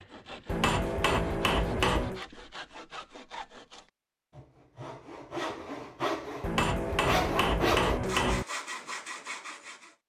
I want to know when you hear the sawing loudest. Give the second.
8 s.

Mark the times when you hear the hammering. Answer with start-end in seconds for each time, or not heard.
0.5-2.2, 6.4-8.4.